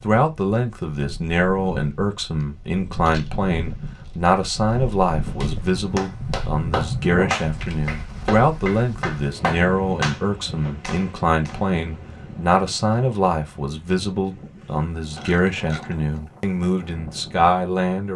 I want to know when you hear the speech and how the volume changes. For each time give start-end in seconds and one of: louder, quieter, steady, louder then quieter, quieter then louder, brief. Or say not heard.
0.0-18.1 steady.